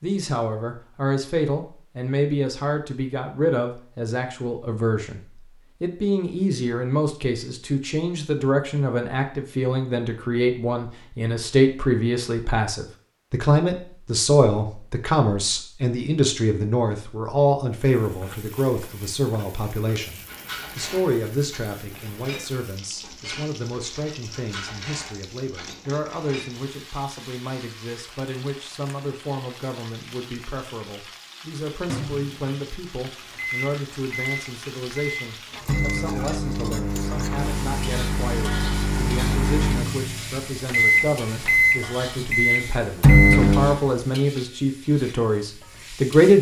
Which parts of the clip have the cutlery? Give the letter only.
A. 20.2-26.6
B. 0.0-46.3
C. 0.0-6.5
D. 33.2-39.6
A.